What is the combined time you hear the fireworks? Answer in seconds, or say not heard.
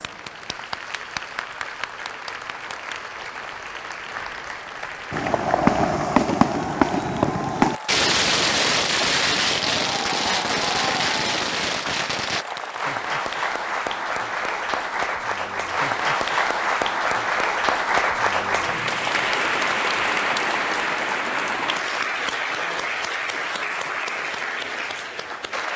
7 s.